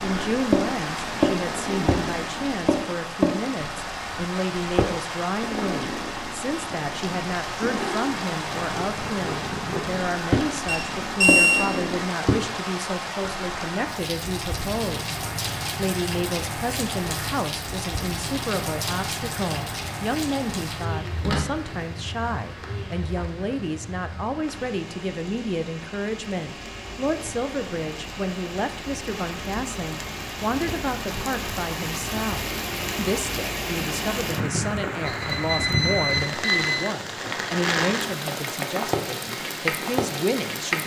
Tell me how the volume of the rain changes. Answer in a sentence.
The volume of the rain goes down, then up.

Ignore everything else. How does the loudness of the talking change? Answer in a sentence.
The volume of the talking stays about the same.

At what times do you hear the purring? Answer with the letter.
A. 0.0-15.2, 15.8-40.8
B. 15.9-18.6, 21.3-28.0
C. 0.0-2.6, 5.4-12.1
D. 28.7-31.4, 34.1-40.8
C.